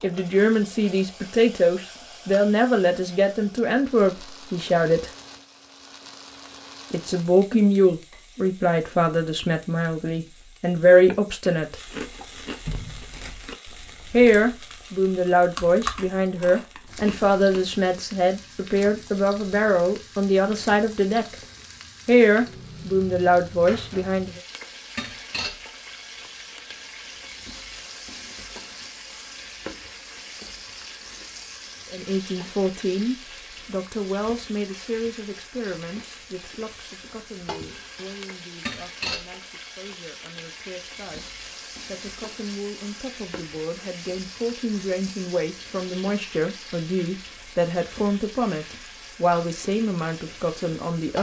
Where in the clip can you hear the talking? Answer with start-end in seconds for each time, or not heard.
0.0-5.1, 6.9-11.8, 14.1-21.4, 22.1-24.4, 31.9-51.1.